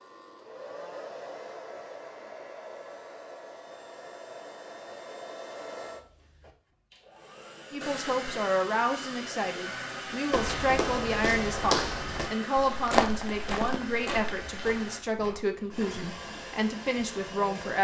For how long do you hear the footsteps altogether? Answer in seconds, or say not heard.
6 s.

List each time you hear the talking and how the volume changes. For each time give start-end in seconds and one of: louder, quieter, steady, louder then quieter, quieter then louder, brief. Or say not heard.
7.7-17.7 steady.